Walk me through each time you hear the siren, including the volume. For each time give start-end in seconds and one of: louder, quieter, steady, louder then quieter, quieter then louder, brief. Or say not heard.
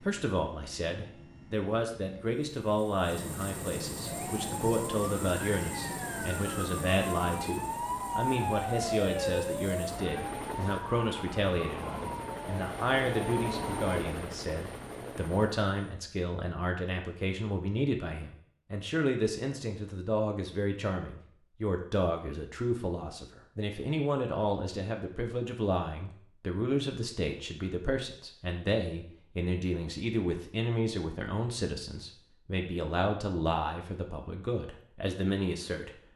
4.0-14.0 louder then quieter.